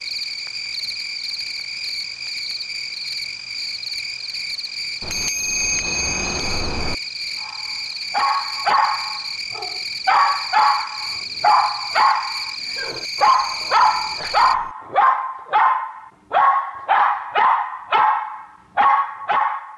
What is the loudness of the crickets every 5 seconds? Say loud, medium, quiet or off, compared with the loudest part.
loud, loud, loud, off.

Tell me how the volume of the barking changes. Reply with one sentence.
The volume of the barking stays about the same.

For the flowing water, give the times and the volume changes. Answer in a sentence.
The flowing water can't be heard in this clip.